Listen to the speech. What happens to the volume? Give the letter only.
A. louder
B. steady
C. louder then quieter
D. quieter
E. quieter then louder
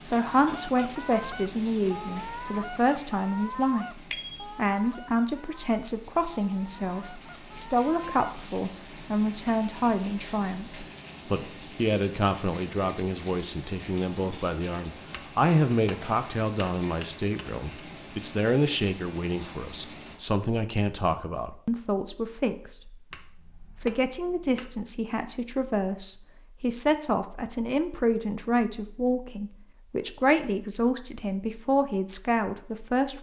B.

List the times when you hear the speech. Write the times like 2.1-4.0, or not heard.
0.0-3.9, 4.5-22.9, 23.6-33.1.